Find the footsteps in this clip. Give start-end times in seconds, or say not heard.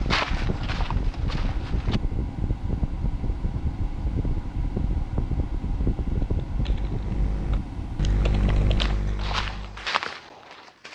0.0-2.0, 8.8-10.9.